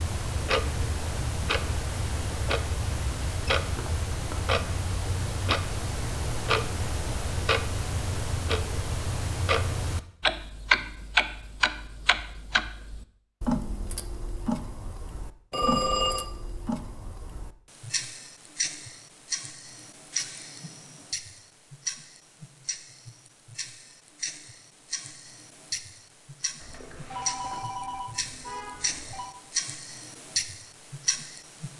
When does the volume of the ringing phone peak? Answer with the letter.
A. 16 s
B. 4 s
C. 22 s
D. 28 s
A.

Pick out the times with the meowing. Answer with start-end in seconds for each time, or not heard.
not heard.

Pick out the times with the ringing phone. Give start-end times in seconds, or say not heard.
3.5-4.4, 15.5-16.2, 26.6-29.4.